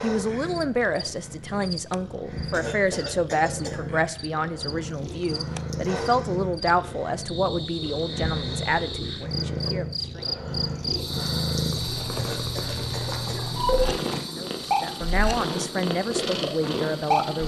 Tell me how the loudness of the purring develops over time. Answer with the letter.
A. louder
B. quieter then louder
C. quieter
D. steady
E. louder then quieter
A.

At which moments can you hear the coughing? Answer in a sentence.
You can hear the coughing from 2.5 to 3.9 s and from 12.2 to 13.5 s.